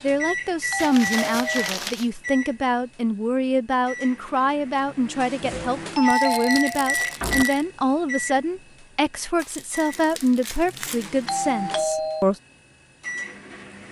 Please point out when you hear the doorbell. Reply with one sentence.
You can hear the doorbell from 0.7 to 1.7 s, from 5.4 to 7.5 s and from 11.2 to 12.2 s.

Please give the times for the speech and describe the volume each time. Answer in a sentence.
The speech can be heard from 0.0 to 12.3 s, at a steady volume.